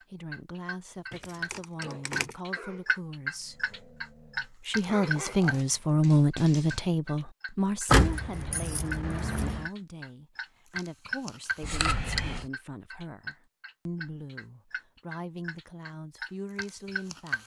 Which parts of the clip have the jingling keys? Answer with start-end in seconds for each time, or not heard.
1.1-2.3, 7.8-9.7, 11.6-12.4.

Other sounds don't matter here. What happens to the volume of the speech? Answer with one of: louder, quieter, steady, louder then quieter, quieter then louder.
louder then quieter.